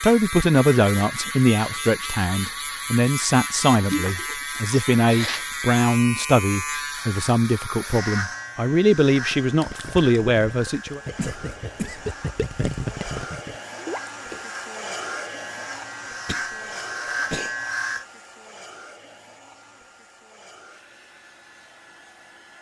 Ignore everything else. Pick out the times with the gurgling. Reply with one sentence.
The gurgling can be heard from 9.1 to 14.4 s.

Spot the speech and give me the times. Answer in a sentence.
The speech can be heard from 0.0 to 11.0 s.